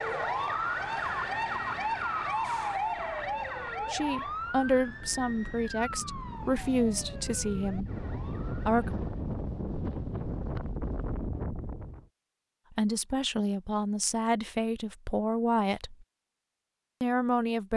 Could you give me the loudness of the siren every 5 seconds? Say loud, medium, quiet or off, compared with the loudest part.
loud, quiet, off, off.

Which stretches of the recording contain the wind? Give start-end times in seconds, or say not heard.
0.0-12.1.